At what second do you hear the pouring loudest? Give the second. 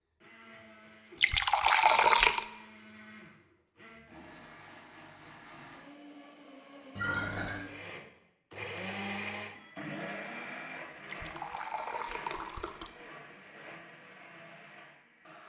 2 s.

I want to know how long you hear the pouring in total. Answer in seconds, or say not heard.
4 s.